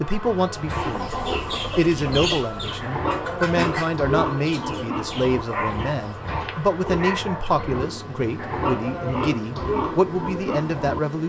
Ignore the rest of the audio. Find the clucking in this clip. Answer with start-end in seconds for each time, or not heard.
0.8-6.2.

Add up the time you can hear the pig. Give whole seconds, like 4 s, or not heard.
11 s.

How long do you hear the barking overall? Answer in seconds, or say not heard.
2 s.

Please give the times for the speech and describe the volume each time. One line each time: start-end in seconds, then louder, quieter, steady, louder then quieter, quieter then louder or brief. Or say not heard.
0.0-1.1 brief
1.8-11.2 steady.